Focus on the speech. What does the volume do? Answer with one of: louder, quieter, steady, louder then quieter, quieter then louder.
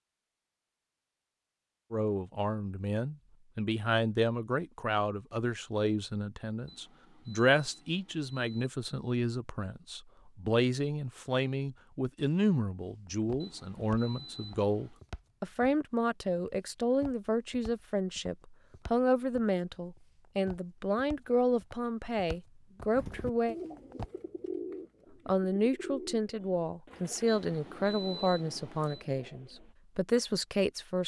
steady.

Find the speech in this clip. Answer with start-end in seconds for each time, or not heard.
1.9-23.6, 25.2-31.0.